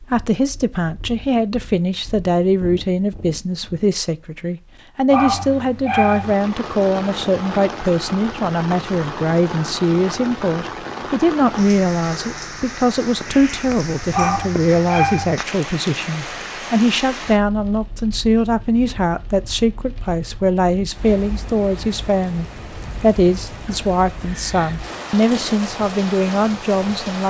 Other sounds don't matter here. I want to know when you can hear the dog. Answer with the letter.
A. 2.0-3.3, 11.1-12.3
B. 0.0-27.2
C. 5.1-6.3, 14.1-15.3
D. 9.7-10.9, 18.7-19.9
C.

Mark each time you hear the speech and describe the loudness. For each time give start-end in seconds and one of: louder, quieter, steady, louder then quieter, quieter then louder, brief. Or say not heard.
0.0-27.2 steady.